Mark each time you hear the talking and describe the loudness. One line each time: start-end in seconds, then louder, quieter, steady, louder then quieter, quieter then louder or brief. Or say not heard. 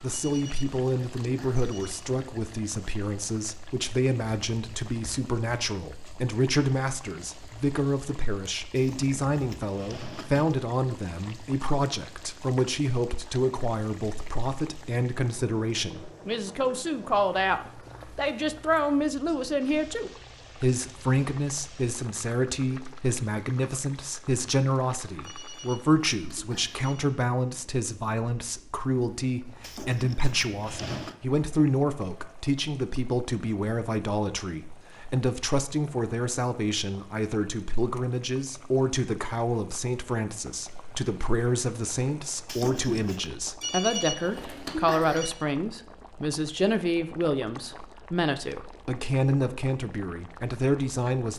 0.0-51.3 steady.